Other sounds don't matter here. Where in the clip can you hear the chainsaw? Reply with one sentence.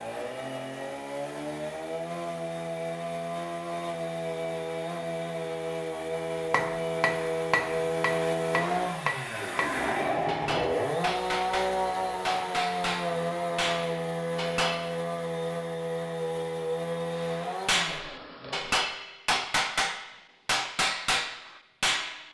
You can hear the chainsaw from 0.0 to 18.8 s.